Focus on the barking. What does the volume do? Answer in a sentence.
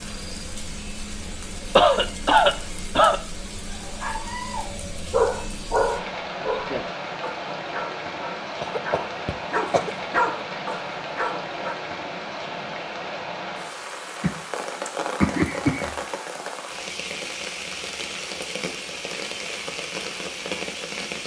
The volume of the barking goes down, then up.